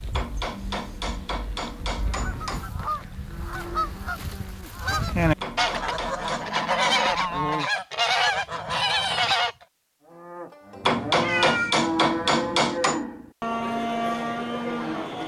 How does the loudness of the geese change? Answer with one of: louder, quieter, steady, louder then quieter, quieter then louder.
louder.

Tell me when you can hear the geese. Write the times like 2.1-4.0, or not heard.
2.0-9.6.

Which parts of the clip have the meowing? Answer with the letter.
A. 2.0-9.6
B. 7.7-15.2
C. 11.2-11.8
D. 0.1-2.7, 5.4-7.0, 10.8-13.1
C.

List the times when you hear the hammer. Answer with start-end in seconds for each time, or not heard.
0.1-2.7, 5.4-7.0, 10.8-13.1.